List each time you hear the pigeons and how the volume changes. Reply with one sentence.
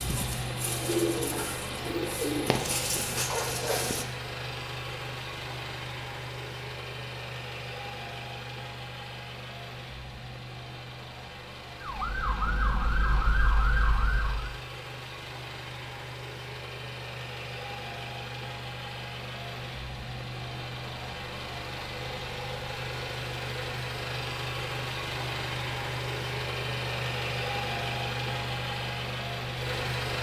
You can hear the pigeons from 0.0 to 4.0 s, at a steady volume.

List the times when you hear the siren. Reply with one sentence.
You can hear the siren from 11.8 to 14.6 s.